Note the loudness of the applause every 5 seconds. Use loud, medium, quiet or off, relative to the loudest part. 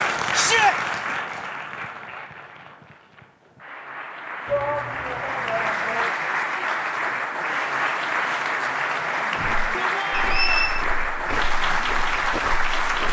medium, loud, loud.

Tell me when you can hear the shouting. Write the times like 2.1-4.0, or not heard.
0.3-0.8, 4.5-6.1, 9.3-10.4.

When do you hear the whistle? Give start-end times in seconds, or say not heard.
10.1-10.8.